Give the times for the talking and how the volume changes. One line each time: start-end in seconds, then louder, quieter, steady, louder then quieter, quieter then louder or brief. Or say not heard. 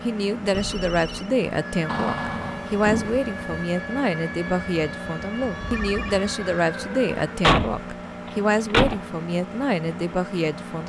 0.0-10.8 steady.